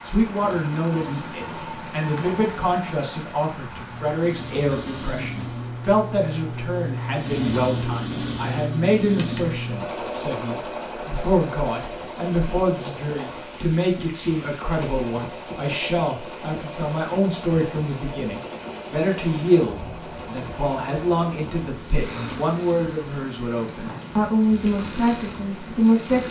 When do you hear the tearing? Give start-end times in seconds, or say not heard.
not heard.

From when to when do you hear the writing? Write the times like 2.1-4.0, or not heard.
not heard.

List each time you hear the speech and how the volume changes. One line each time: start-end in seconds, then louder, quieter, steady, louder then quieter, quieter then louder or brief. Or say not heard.
0.0-26.2 steady.